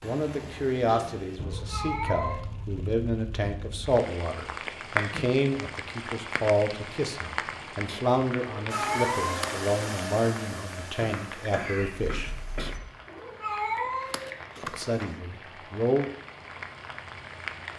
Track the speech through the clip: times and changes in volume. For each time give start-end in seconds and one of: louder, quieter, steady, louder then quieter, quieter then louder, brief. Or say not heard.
0.0-12.3 steady
14.6-16.1 brief.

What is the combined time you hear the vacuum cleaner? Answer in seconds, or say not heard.
4 s.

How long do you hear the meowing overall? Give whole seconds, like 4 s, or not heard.
6 s.